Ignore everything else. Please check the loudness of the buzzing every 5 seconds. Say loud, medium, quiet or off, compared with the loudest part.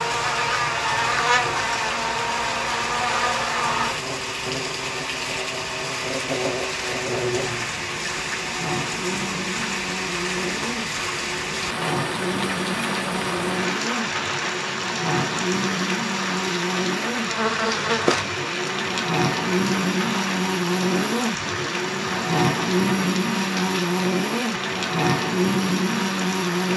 loud, medium, medium, loud, loud, loud.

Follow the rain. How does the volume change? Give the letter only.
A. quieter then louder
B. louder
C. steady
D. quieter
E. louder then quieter
C.